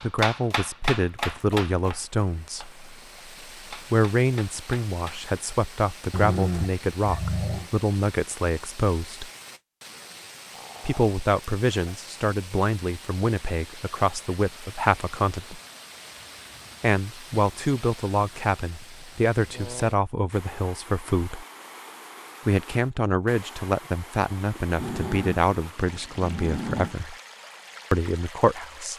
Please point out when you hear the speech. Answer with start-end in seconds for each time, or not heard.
0.0-2.8, 3.7-9.3, 10.8-15.6, 16.8-21.4, 22.4-27.1, 27.9-28.9.